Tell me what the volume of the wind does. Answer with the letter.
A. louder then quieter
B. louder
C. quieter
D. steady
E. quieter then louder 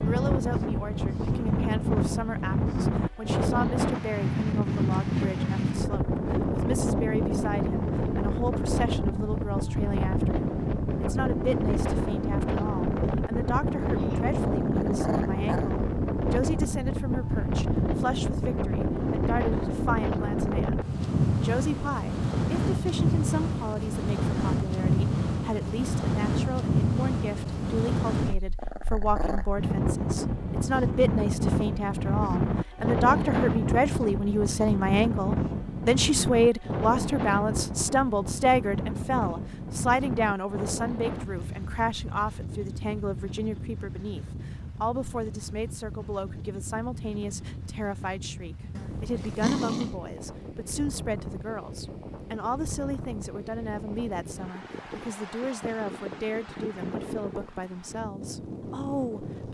C.